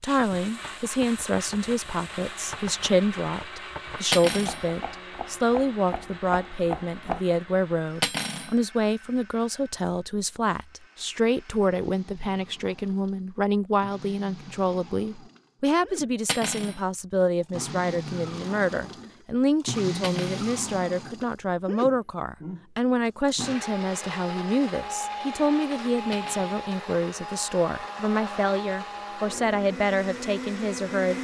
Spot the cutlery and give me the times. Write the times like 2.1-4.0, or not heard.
4.1-4.7, 8.0-8.6, 16.2-16.8, 20.0-20.5, 26.1-26.6.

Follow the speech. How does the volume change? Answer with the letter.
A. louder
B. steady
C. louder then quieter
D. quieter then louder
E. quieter
B.